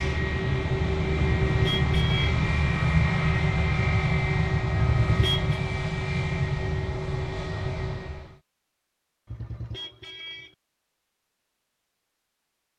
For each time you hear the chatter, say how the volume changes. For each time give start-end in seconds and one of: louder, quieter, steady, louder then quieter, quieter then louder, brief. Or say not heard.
not heard.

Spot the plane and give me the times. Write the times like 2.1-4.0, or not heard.
0.0-8.4.